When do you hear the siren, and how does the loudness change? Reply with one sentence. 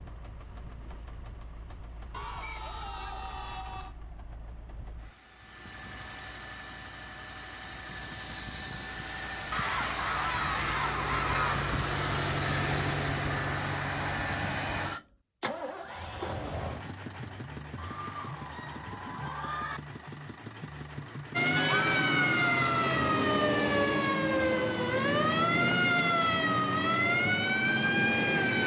You can hear the siren from 21.3 to 28.6 s, at a steady volume.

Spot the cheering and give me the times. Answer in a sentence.
The cheering can be heard from 2.1 to 4.0 s, from 9.5 to 11.7 s, from 17.8 to 19.8 s and from 21.6 to 23.4 s.